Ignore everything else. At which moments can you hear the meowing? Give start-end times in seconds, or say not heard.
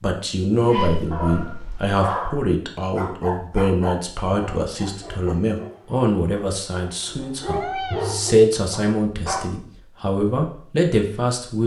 1.0-1.9, 7.5-8.2.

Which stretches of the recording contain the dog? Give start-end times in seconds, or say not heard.
0.6-9.4.